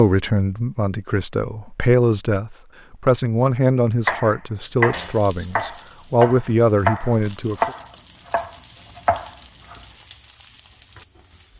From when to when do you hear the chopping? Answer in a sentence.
You can hear the chopping from 4.0 to 9.8 s.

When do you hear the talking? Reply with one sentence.
You can hear the talking from 0.0 to 7.7 s.